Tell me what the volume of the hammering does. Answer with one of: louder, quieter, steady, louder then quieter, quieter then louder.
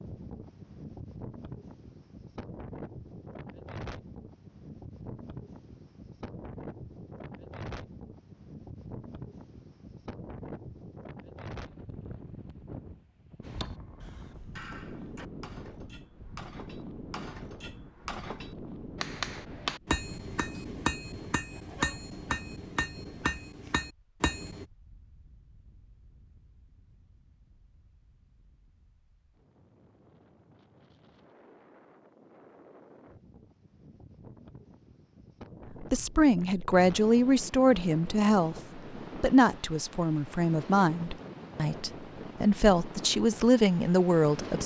louder.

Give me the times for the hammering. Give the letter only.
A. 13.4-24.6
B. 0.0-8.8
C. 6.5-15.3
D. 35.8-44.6
A.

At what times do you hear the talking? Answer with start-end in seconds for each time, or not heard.
35.8-44.6.